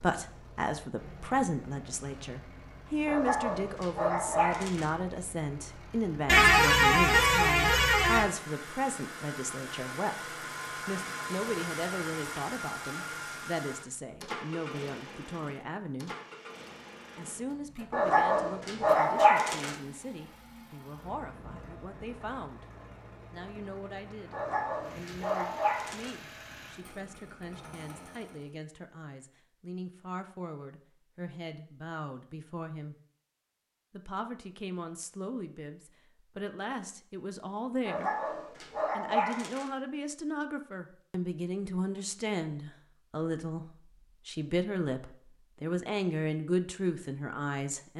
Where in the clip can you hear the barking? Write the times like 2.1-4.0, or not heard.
3.0-4.9, 17.9-19.8, 24.3-26.1, 37.9-39.7.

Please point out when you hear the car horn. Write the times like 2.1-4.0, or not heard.
6.2-8.2.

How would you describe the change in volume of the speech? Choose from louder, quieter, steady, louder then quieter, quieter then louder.
quieter then louder.